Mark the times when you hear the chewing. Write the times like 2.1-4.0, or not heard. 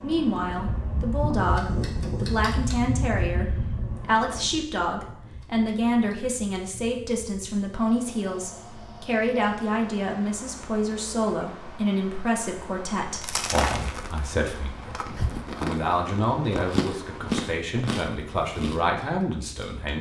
13.1-18.9.